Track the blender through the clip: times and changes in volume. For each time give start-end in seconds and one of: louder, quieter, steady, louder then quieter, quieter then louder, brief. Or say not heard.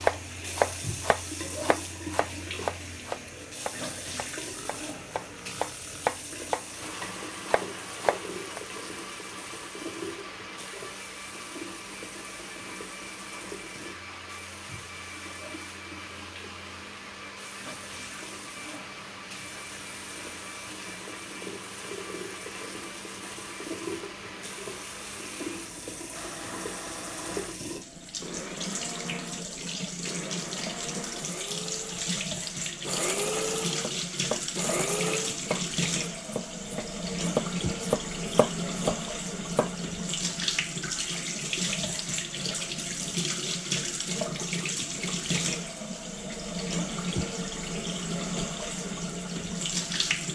6.6-35.4 louder.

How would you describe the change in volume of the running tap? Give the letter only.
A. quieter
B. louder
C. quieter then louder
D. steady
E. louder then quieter
C.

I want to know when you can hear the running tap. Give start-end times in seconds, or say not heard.
0.0-50.3.